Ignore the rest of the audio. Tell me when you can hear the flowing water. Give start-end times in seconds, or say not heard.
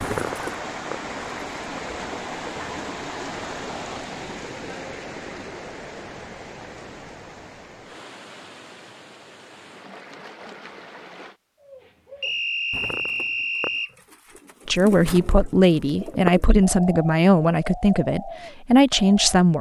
0.0-11.4.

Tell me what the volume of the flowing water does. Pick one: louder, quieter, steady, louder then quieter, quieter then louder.
quieter.